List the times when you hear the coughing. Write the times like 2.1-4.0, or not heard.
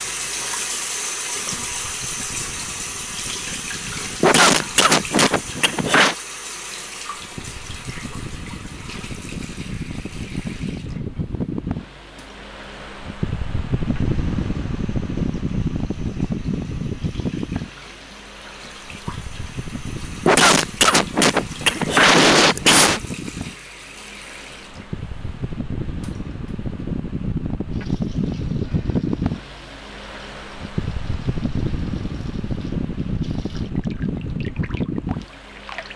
4.2-6.2, 20.2-23.0.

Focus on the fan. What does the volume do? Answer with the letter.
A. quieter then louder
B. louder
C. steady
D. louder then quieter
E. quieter
B.